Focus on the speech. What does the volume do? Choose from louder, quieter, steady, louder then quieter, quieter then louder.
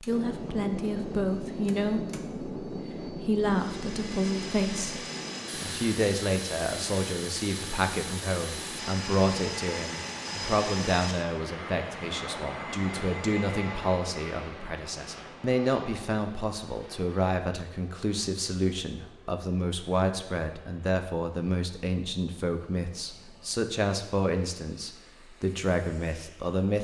steady.